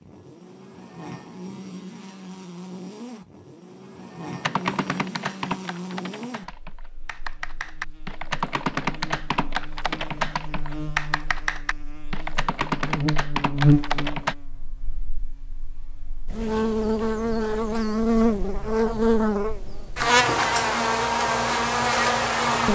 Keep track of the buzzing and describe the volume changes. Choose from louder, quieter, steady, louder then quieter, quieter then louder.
louder.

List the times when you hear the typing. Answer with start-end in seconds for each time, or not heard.
4.4-14.3.